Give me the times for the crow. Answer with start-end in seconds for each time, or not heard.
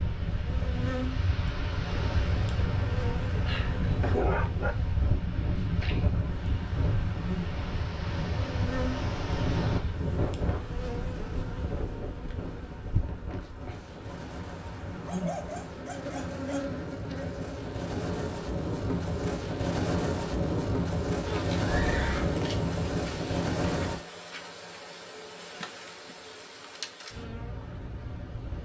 not heard.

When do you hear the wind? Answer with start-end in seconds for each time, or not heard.
0.0-24.1.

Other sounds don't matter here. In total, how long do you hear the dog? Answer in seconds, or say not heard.
3 s.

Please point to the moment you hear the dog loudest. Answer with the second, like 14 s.
4 s.